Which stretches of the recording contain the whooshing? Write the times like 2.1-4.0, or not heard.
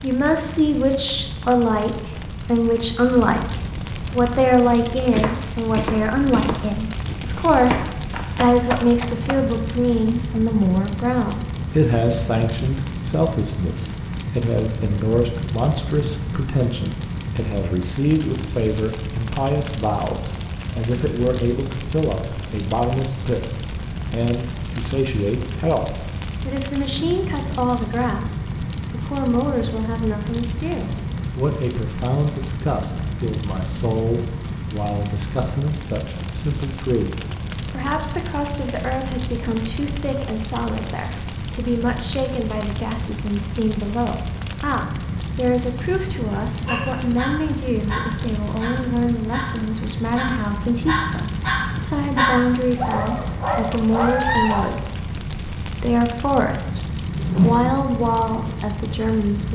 57.0-57.9.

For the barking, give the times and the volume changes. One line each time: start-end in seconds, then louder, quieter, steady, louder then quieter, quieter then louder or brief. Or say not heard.
46.5-54.7 louder.